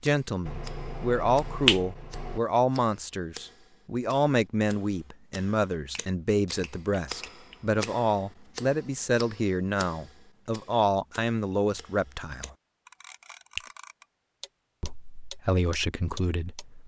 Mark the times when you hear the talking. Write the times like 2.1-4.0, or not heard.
0.0-12.6, 14.8-16.8.